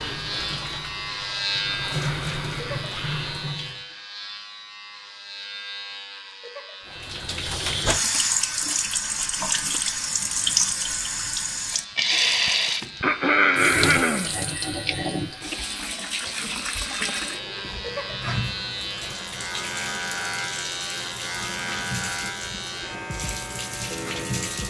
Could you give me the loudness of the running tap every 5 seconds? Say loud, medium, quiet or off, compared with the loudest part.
medium, loud, loud, medium, medium.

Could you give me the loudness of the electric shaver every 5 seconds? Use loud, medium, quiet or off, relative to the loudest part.
loud, medium, medium, loud, loud.